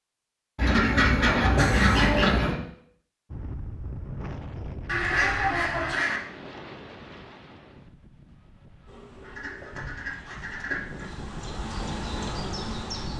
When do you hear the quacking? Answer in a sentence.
The quacking can be heard from 0.6 to 2.5 s, from 4.8 to 6.2 s and from 9.2 to 11.1 s.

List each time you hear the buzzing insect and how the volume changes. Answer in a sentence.
The buzzing insect can be heard from 8.8 to 13.1 s, getting quieter then louder.